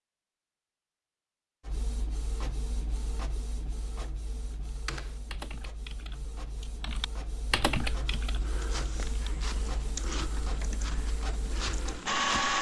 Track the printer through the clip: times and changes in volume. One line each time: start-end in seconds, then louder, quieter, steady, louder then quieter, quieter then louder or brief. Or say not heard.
1.6-12.5 quieter then louder.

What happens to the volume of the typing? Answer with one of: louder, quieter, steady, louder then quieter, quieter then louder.
louder then quieter.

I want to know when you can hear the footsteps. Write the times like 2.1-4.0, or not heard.
7.9-12.5.